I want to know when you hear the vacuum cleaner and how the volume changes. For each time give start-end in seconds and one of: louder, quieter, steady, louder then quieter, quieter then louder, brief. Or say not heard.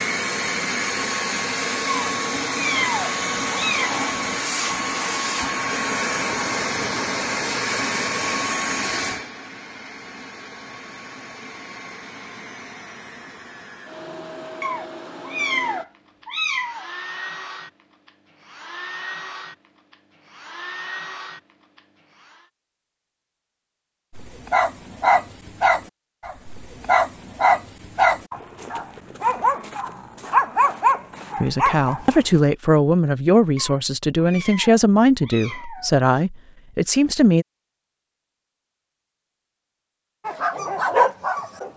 0.0-22.5 quieter.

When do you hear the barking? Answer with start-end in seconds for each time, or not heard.
24.1-32.2, 40.2-41.7.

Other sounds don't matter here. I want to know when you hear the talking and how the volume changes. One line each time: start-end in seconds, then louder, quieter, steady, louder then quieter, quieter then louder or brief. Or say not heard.
31.4-37.5 steady.